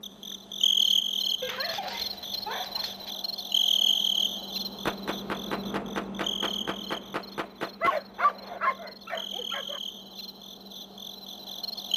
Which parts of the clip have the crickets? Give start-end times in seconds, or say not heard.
0.0-11.9.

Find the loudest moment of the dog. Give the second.
8 s.